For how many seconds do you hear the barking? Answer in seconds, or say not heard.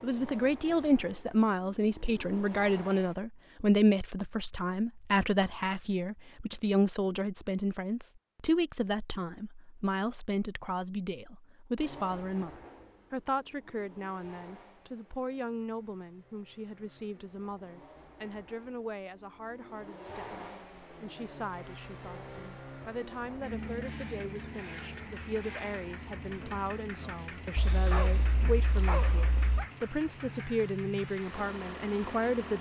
2 s.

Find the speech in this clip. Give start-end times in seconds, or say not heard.
0.0-32.5.